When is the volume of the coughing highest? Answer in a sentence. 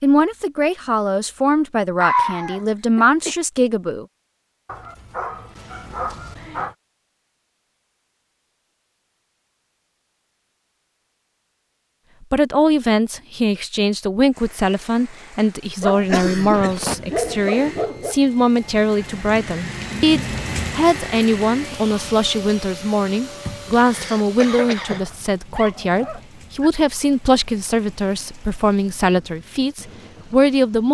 The volume of the coughing peaks at 2 seconds.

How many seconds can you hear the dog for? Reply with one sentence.
The dog can be heard for 6 seconds in total.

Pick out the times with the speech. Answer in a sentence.
You can hear the speech from 0.0 to 4.0 s and from 12.3 to 30.8 s.